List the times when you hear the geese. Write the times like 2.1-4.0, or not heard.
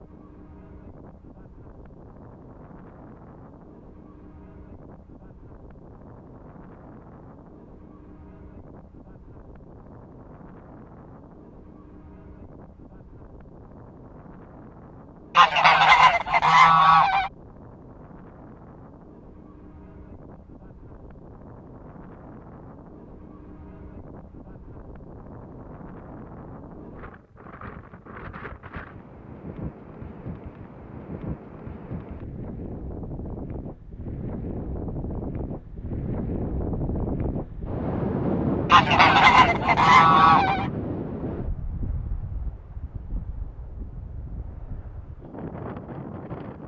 15.3-17.3, 38.7-40.7.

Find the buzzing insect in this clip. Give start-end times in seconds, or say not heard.
not heard.